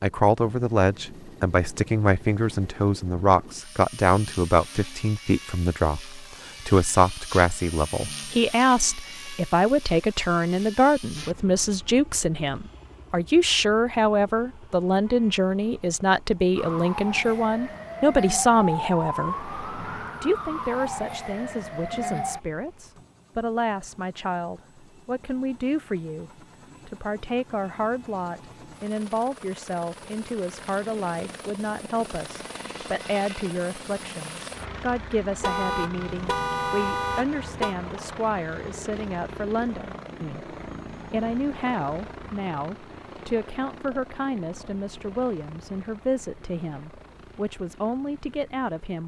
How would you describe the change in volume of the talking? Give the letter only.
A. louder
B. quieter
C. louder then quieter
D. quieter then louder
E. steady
B.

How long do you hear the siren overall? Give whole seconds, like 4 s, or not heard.
6 s.